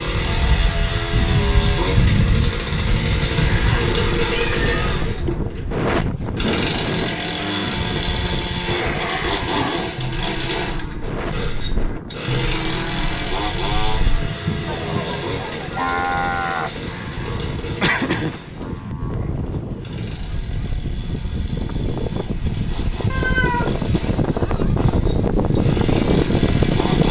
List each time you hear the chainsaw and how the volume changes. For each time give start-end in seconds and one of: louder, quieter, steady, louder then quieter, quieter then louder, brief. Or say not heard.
0.0-27.0 quieter.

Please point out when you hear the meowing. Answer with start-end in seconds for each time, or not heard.
3.2-5.7, 14.2-15.6, 23.1-23.8.